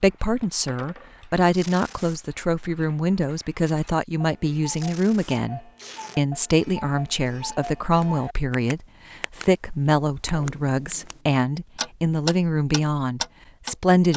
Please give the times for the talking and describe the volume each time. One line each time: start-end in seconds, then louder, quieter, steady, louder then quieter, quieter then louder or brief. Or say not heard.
0.0-14.1 steady.